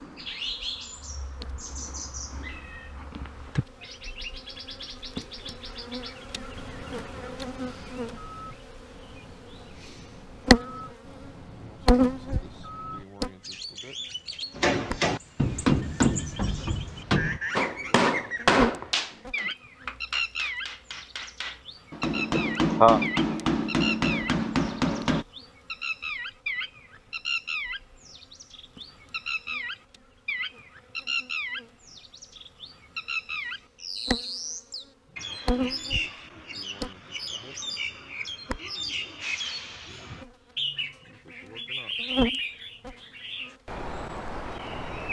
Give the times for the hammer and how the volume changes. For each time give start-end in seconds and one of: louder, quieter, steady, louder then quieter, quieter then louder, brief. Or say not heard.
14.6-25.2 quieter then louder.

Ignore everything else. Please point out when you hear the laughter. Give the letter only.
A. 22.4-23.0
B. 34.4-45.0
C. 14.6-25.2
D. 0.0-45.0
A.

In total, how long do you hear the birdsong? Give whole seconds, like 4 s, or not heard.
45 s.